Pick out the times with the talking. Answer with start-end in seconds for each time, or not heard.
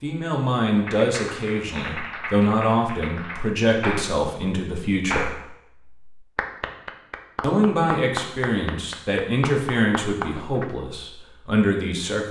0.0-5.3, 7.4-12.2.